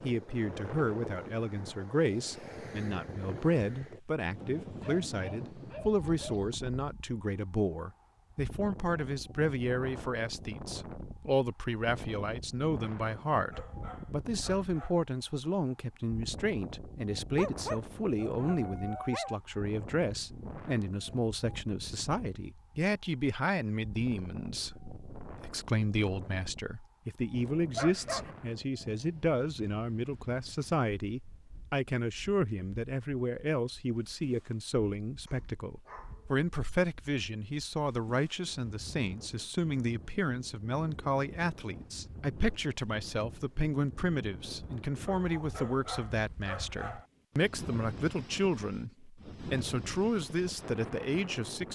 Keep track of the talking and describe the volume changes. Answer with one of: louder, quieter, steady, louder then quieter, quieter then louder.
steady.